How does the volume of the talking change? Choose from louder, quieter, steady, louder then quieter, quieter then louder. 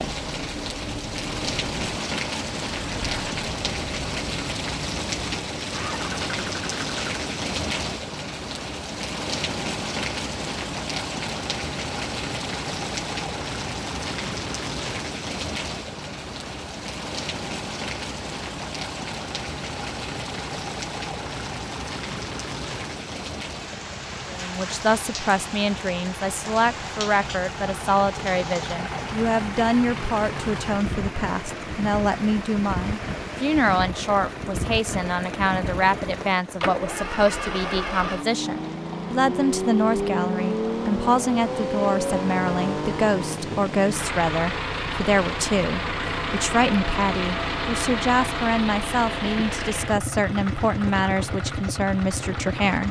steady.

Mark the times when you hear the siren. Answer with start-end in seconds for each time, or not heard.
not heard.